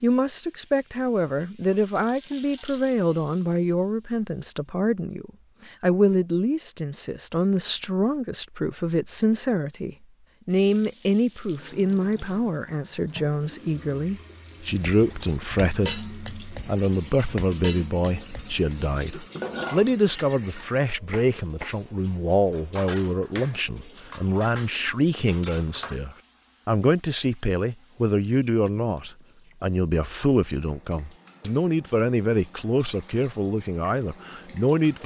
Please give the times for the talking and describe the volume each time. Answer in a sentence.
You can hear the talking from 0.0 to 35.0 s, at a steady volume.